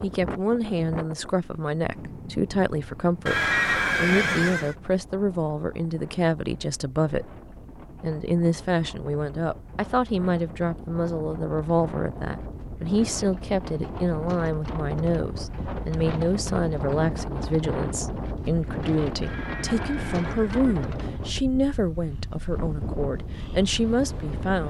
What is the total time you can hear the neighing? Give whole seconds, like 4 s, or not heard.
3 s.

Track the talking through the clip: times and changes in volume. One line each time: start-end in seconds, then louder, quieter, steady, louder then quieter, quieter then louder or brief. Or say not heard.
0.0-7.3 steady
8.0-24.6 steady.